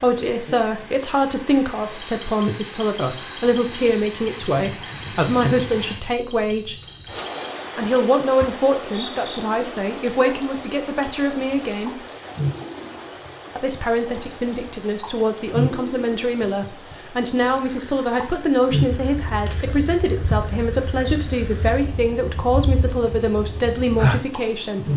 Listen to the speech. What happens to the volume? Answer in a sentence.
The loudness of the speech stays about the same.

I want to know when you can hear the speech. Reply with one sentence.
The speech can be heard from 0.0 to 6.8 s, from 7.8 to 11.9 s and from 13.6 to 24.9 s.